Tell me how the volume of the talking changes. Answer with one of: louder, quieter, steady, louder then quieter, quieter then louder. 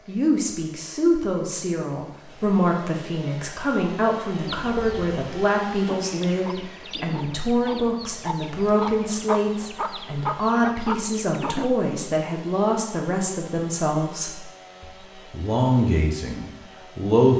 steady.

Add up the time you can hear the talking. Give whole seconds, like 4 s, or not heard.
17 s.